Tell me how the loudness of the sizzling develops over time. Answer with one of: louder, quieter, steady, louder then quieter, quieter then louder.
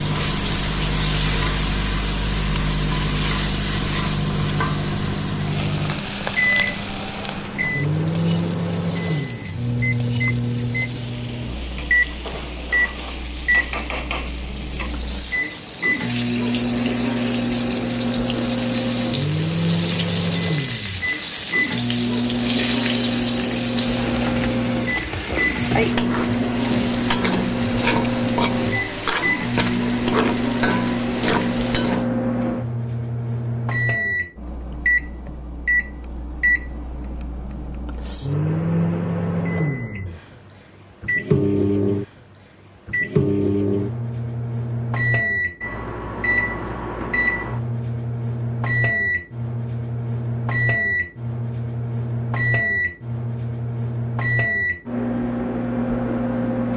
quieter then louder.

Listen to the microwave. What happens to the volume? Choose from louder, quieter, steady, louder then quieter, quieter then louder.
steady.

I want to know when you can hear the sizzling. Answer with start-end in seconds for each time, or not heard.
0.0-32.1.